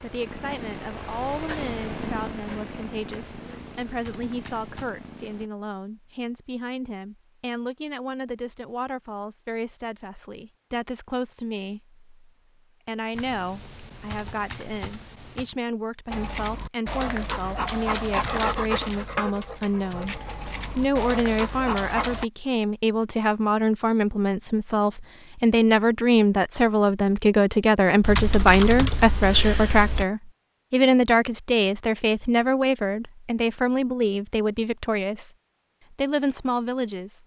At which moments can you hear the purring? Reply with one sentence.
You can hear the purring from 0.0 to 5.5 s.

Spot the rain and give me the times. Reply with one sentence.
The rain can't be heard in this clip.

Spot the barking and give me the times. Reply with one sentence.
You can hear the barking from 16.1 to 22.2 s.